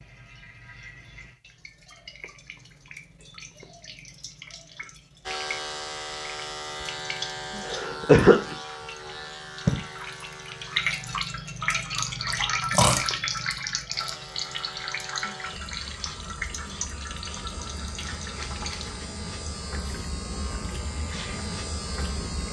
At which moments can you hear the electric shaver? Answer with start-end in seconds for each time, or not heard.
5.2-11.2, 13.9-22.4.